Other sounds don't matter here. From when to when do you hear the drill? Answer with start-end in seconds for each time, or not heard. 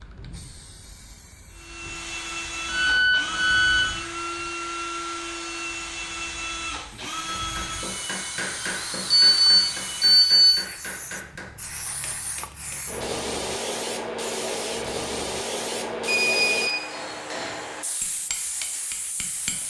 1.5-10.4.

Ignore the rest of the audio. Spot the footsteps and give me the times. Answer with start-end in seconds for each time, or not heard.
not heard.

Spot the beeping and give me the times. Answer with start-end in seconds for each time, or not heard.
2.6-3.9, 9.1-10.6, 16.1-16.8.